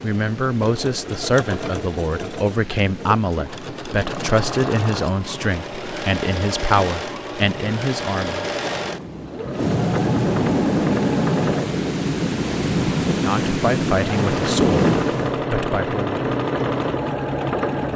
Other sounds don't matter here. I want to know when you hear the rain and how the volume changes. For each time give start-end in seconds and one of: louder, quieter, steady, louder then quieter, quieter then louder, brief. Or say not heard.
0.0-15.4 louder.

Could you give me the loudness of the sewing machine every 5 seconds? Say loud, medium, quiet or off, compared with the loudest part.
medium, medium, loud, loud.